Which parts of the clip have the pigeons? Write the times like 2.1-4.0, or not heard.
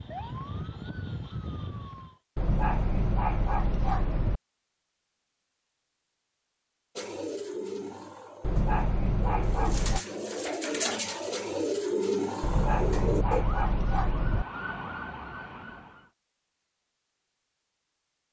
7.0-13.4.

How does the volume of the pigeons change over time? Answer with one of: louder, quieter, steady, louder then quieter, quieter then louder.
louder.